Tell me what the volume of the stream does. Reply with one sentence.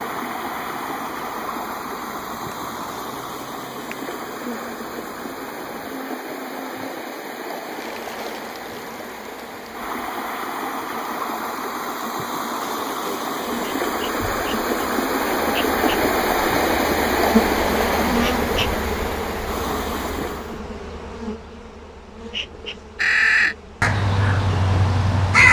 The volume of the stream goes up.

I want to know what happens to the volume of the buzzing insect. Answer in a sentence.
The loudness of the buzzing insect goes up, then down.